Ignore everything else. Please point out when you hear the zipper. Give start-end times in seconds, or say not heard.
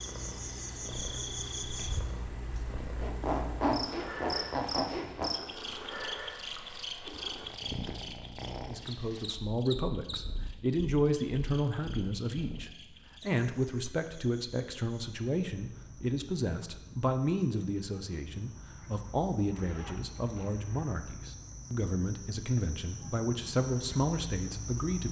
3.0-5.3, 19.5-20.8.